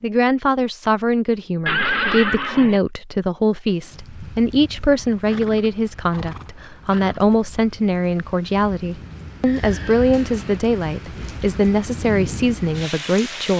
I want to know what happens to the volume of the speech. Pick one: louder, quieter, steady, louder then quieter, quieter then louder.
steady.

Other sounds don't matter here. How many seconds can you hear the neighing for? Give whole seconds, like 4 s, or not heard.
4 s.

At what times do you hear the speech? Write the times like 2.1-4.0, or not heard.
0.0-13.5.